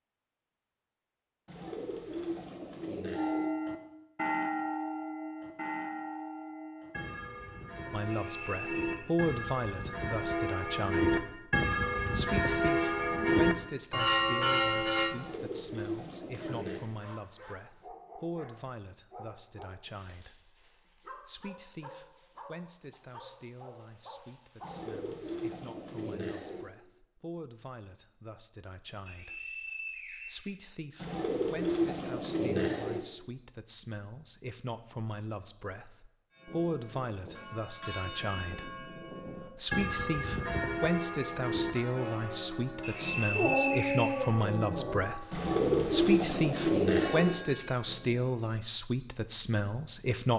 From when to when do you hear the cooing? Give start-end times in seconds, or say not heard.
1.4-3.5, 15.1-16.9, 24.6-26.6, 31.0-33.0, 45.3-47.3.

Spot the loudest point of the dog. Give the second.
44 s.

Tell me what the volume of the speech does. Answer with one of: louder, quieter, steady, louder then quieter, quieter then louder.
quieter then louder.